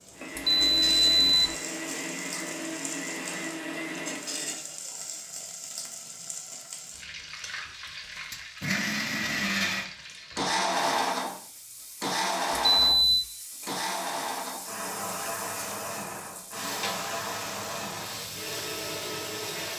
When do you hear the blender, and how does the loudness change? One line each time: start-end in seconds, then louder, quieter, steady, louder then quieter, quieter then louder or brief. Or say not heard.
0.0-4.6 steady
8.3-19.7 quieter.